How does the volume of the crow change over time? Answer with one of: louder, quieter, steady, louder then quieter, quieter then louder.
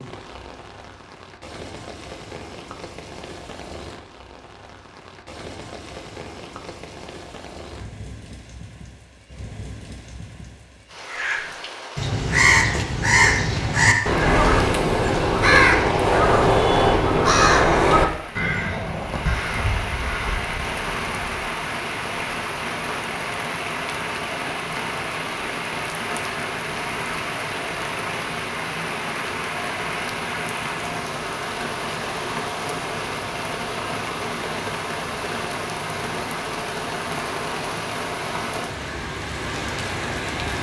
quieter.